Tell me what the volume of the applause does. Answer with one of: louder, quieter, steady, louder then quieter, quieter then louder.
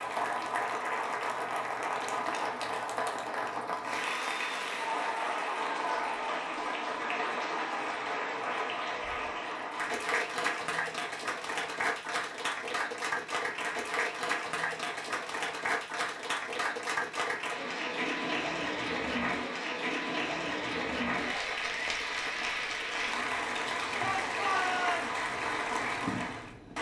steady.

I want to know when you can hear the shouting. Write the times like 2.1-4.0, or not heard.
24.0-25.2.